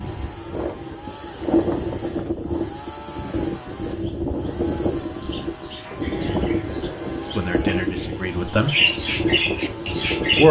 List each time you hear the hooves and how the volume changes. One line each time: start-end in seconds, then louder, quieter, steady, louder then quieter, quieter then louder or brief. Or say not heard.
0.0-10.4 steady.